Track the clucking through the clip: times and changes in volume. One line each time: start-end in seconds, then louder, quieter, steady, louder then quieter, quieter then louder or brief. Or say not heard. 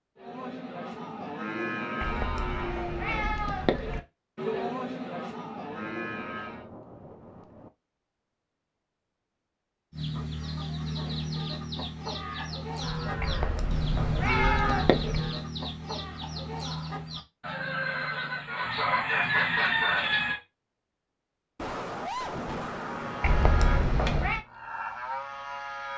9.9-20.4 louder.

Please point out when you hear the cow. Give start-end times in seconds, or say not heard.
0.1-6.7, 12.2-15.4, 22.8-25.9.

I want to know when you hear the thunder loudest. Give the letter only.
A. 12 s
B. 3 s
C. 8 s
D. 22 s
D.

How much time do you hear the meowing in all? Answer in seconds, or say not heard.
5 s.